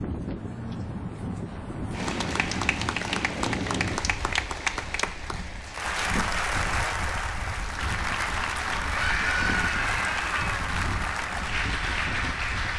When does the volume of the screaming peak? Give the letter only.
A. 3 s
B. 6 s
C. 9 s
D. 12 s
C.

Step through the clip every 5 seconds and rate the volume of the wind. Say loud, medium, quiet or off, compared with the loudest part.
loud, medium, medium.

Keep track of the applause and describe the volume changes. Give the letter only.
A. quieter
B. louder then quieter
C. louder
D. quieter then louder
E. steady
E.